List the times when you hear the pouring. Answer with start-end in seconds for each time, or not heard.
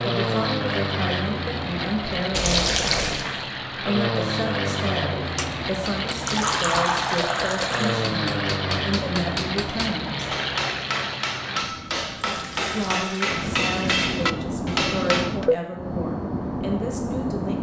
2.3-3.2, 6.1-8.1, 12.2-14.2.